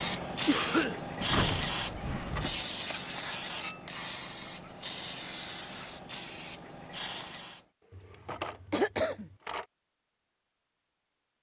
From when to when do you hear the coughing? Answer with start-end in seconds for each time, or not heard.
0.5-1.8, 7.9-9.3.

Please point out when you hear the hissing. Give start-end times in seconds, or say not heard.
0.0-7.7.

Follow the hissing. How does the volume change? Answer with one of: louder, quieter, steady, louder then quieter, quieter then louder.
quieter.